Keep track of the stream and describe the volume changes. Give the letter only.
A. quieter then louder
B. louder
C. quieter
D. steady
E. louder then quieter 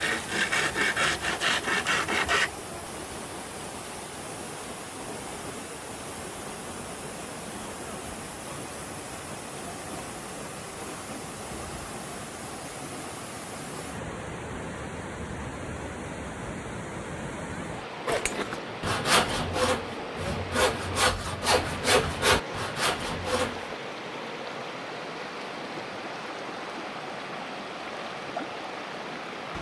D.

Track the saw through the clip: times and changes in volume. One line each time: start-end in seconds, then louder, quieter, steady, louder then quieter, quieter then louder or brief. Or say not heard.
0.0-2.5 brief
18.1-23.6 steady.